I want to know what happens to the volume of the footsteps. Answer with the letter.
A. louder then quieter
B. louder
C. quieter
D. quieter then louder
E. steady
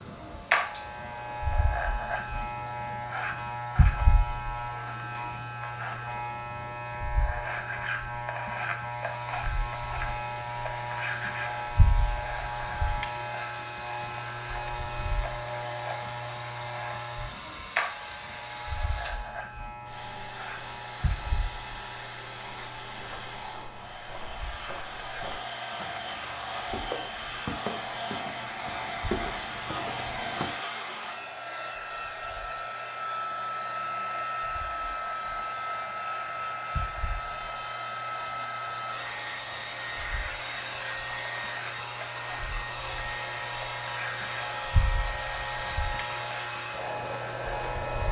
B.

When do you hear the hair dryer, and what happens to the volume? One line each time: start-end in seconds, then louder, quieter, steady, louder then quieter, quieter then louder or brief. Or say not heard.
0.0-48.0 louder.